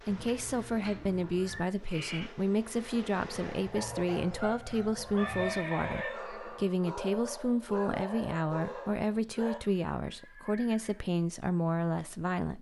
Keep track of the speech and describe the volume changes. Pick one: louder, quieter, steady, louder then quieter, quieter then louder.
steady.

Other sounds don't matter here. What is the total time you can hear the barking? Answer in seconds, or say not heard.
6 s.